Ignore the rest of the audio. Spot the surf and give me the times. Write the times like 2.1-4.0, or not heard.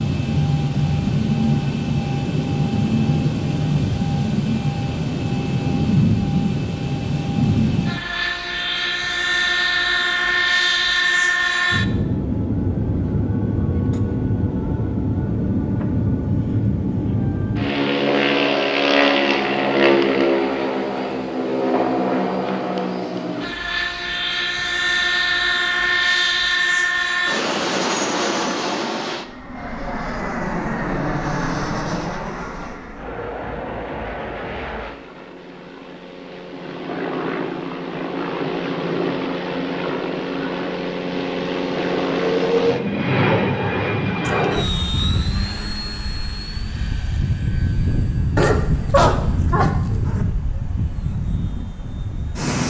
not heard.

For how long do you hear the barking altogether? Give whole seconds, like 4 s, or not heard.
2 s.